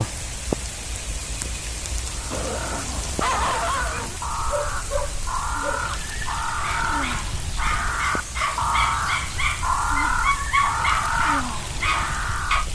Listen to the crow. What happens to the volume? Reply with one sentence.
The volume of the crow goes up.